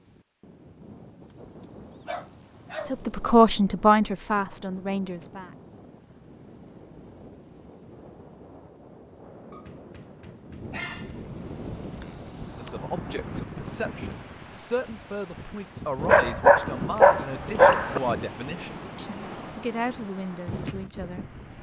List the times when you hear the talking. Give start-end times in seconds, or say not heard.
2.9-5.5, 12.6-21.5.